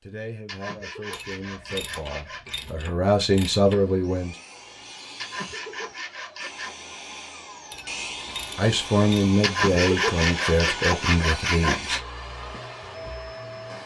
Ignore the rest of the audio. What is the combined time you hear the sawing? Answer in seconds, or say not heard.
6 s.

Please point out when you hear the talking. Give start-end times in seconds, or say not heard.
0.0-4.3, 8.6-12.0.